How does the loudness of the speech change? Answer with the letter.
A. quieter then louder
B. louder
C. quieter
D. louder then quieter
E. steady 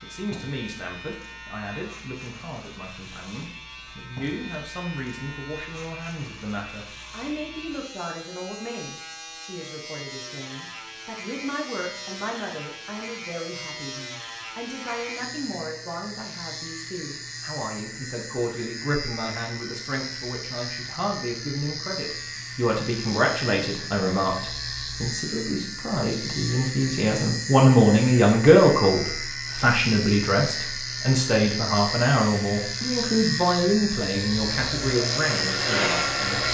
B.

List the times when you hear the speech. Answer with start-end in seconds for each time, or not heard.
0.0-36.2.